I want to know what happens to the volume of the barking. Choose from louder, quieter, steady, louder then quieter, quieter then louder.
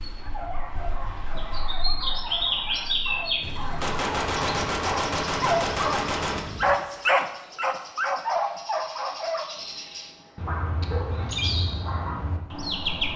louder then quieter.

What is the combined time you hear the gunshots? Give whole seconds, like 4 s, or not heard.
3 s.